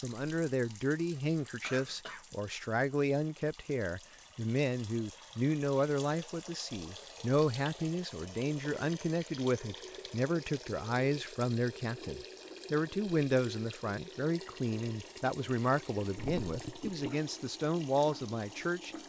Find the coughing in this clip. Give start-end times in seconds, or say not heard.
1.6-2.2, 16.1-17.2.